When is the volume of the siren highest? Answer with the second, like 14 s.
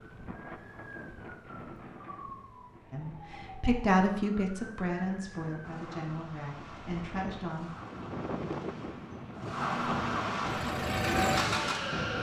10 s.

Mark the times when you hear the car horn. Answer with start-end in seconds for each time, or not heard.
not heard.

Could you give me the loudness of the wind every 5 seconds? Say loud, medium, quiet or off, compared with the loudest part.
medium, loud, loud.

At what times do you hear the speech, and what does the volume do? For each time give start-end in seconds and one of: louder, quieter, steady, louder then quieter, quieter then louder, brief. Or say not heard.
2.9-7.7 quieter.